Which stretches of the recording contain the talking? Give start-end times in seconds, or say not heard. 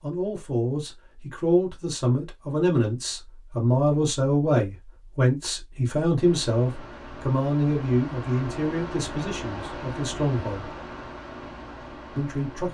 0.0-10.8, 12.2-12.6.